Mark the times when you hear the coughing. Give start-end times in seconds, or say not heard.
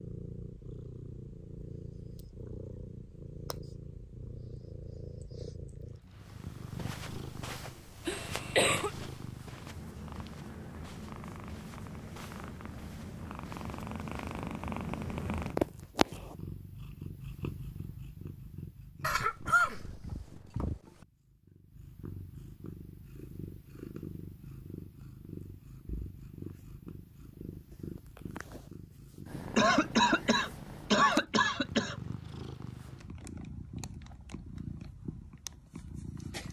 8.1-8.9, 19.0-20.6, 29.6-31.9.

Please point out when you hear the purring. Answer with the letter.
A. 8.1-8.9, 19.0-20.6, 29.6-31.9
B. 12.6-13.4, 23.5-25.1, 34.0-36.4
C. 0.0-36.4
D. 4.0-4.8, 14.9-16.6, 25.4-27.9
C.